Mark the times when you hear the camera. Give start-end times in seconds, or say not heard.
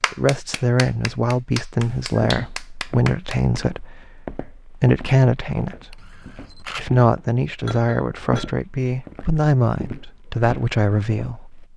5.9-6.8.